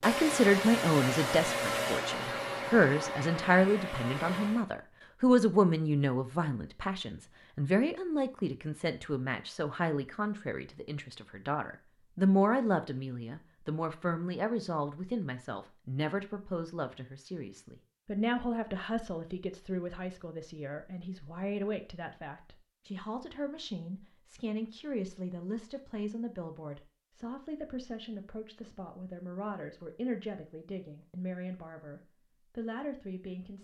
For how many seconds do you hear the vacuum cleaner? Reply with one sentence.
The vacuum cleaner can be heard for 5 seconds in total.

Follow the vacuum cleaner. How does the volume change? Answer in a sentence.
The loudness of the vacuum cleaner goes down.